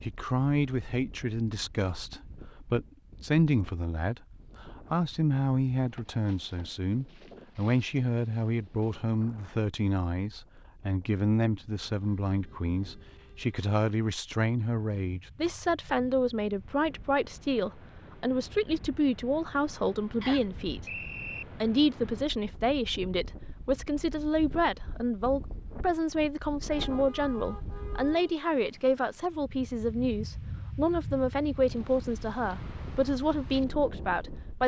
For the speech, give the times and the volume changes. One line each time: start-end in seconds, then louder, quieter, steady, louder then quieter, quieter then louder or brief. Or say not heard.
0.0-34.6 steady.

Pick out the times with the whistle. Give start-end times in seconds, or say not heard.
20.2-21.4.